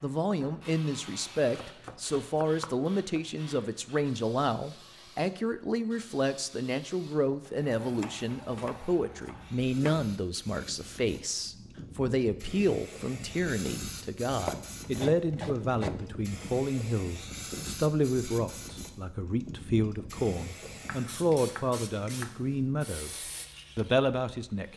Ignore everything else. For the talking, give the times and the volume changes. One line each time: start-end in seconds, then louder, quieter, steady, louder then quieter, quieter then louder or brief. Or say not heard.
0.0-24.7 steady.